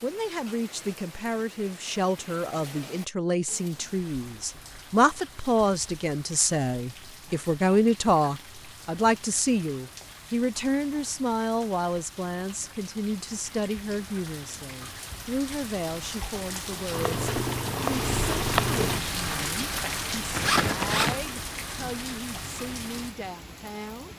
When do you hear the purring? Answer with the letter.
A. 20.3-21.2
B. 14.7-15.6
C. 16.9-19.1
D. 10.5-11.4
C.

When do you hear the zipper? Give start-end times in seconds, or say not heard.
20.3-21.2.